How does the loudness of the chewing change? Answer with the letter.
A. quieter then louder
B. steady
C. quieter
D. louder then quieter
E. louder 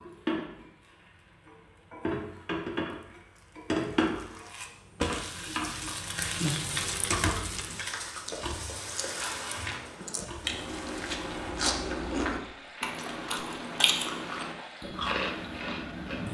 E.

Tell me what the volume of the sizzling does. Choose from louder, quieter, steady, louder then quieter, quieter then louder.
louder then quieter.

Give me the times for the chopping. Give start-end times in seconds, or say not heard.
not heard.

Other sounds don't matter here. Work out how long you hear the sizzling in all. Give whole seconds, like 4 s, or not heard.
16 s.